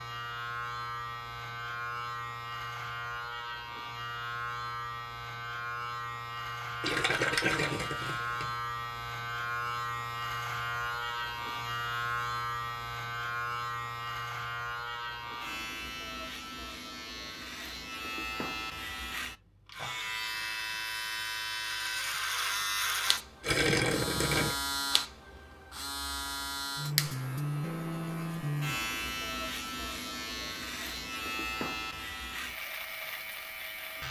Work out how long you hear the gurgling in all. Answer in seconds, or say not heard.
3 s.